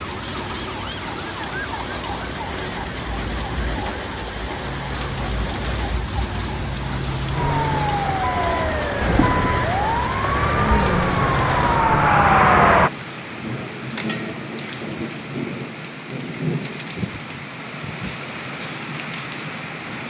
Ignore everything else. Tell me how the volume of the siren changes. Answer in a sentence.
The loudness of the siren goes up.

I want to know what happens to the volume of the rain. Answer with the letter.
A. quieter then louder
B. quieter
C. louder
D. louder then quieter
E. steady
E.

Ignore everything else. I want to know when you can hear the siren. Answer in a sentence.
You can hear the siren from 0.0 to 12.9 s.